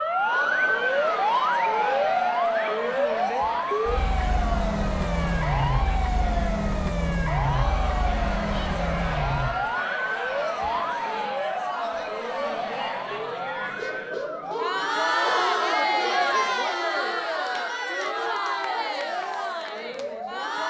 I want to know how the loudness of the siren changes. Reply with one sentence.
The volume of the siren goes down.